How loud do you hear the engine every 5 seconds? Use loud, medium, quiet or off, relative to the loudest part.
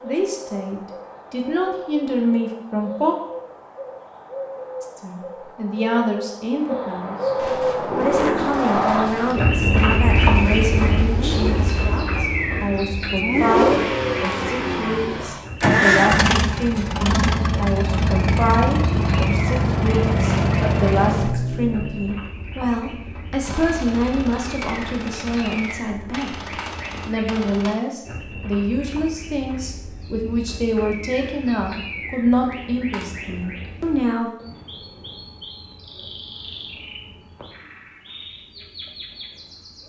off, medium, loud, loud, loud, off, off, off.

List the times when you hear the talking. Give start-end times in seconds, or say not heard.
0.0-3.1, 4.8-7.3, 7.9-26.4, 27.1-34.3.